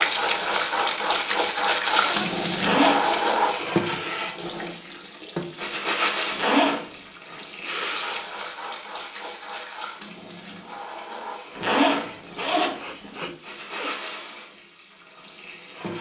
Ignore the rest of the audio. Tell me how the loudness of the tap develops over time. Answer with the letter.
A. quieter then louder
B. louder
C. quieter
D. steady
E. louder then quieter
C.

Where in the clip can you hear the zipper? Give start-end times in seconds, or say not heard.
2.5-3.1, 6.3-7.0, 11.6-13.2.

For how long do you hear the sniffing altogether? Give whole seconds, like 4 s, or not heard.
5 s.